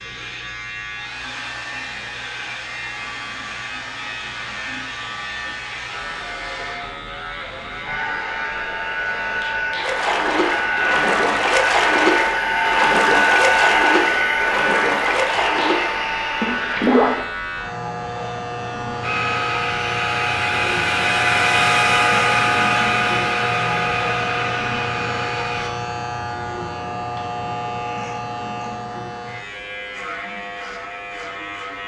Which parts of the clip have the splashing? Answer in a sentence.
The splashing can be heard from 9.8 to 17.2 s.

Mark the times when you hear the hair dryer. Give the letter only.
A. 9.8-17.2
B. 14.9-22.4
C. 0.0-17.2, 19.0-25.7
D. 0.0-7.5
C.